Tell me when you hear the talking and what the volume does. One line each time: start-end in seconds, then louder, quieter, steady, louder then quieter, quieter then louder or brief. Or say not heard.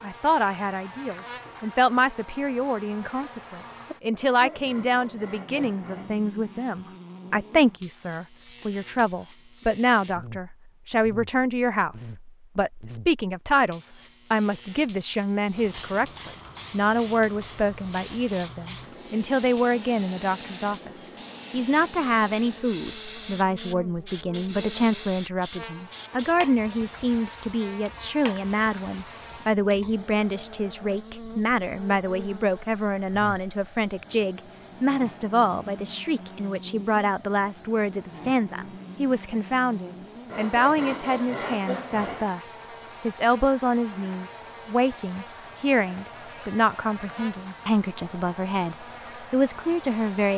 0.0-50.3 steady.